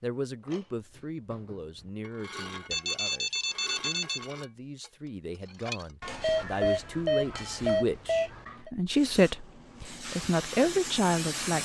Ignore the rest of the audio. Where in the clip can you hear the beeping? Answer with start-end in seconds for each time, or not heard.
2.7-4.2, 6.0-8.7.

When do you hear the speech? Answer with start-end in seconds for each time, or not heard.
0.0-11.6.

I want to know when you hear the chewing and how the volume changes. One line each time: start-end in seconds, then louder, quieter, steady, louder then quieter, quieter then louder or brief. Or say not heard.
not heard.